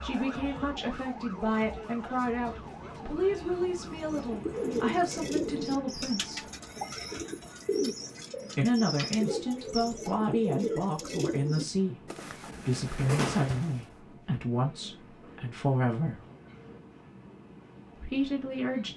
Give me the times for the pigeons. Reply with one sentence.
You can hear the pigeons from 4.0 to 13.8 s.